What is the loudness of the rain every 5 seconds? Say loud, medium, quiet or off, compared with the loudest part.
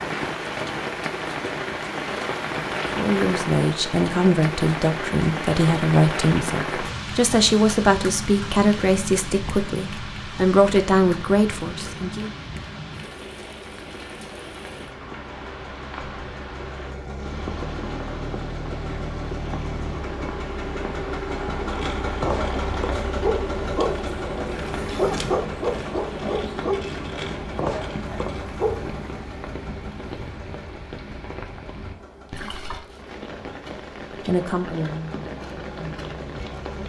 loud, loud, medium, medium, medium, medium, medium, medium.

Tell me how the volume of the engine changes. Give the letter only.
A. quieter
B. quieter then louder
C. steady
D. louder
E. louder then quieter
E.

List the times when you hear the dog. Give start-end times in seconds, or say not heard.
21.6-29.1.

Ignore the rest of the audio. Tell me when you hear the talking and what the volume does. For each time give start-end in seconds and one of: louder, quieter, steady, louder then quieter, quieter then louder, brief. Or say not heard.
3.0-12.3 steady
34.2-36.8 brief.